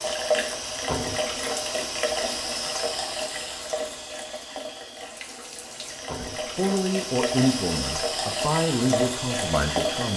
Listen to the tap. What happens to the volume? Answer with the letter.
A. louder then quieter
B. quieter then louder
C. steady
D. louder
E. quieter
B.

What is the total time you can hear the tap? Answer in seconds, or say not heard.
10 s.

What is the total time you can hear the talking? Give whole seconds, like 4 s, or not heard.
4 s.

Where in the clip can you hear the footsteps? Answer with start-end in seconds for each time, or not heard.
not heard.